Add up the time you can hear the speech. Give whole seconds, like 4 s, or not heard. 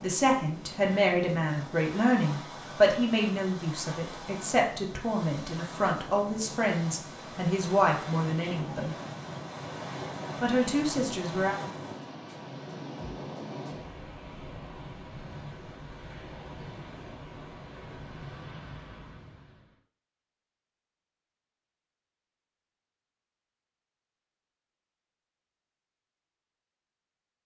10 s.